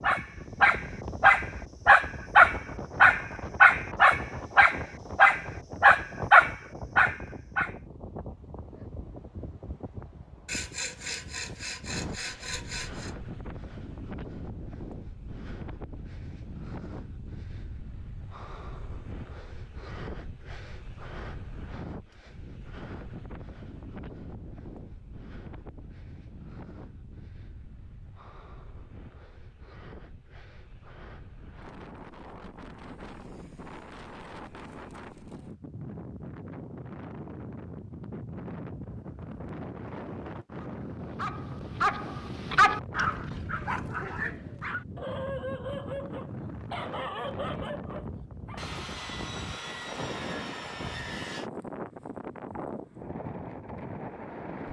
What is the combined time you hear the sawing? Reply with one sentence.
The sawing can be heard for 6 seconds in total.